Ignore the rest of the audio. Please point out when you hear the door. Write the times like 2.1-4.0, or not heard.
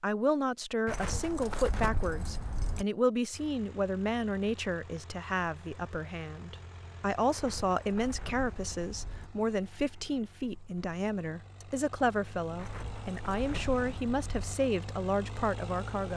not heard.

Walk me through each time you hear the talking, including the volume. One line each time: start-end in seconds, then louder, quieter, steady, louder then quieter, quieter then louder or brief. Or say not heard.
0.0-16.1 steady.